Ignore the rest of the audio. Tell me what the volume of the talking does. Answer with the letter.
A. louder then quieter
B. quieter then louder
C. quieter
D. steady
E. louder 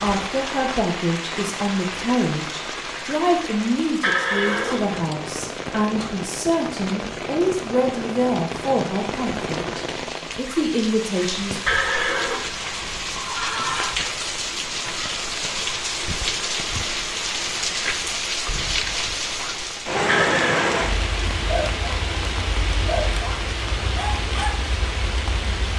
D.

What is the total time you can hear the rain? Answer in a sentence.
The rain can be heard for 26 seconds in total.